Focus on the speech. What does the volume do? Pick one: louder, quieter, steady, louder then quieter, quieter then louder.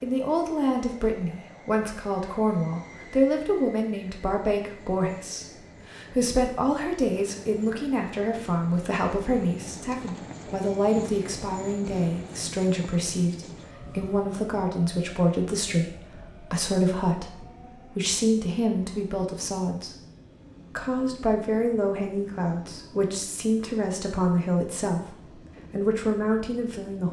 steady.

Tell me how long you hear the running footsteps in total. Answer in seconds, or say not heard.
not heard.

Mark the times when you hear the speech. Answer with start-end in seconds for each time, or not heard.
0.0-19.9, 20.8-27.0.